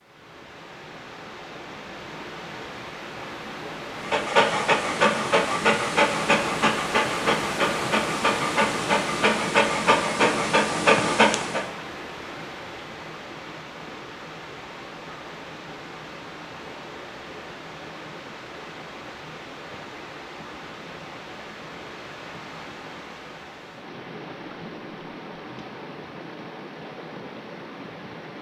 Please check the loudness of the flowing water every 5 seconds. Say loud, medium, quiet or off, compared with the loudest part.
medium, loud, medium, medium, medium, medium.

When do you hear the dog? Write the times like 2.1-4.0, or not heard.
4.0-11.7.